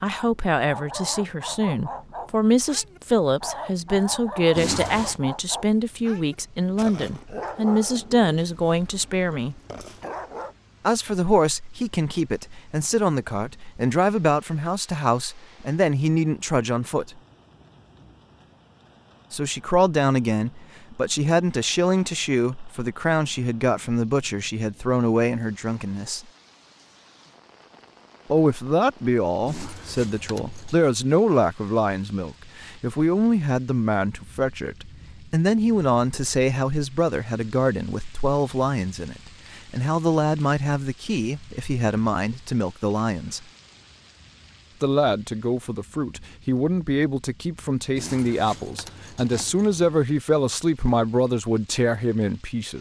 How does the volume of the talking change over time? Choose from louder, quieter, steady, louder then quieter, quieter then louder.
steady.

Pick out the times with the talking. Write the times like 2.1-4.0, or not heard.
0.0-9.6, 10.8-17.2, 19.3-26.2, 28.3-43.4, 44.8-52.7.